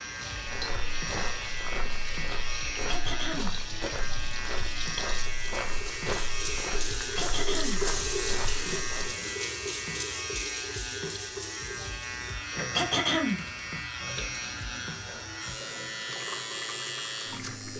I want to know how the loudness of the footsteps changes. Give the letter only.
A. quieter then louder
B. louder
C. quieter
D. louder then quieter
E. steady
E.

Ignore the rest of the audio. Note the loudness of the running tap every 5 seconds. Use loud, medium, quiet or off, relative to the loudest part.
medium, loud, medium, medium.